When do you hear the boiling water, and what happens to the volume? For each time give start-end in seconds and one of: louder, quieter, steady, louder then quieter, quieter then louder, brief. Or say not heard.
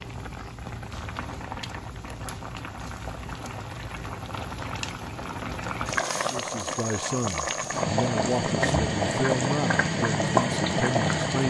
0.0-11.4 louder.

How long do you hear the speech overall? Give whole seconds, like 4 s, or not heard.
5 s.